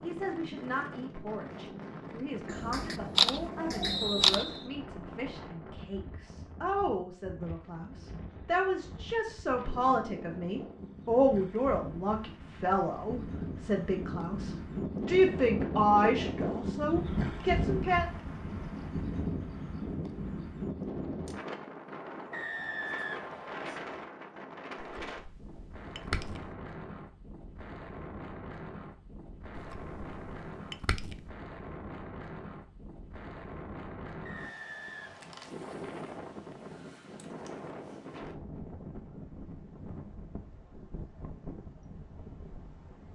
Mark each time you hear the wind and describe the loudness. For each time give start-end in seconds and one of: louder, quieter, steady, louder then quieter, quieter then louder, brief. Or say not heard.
0.0-43.0 louder then quieter.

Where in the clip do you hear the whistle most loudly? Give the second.
4 s.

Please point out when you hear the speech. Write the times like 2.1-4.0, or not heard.
0.0-18.1.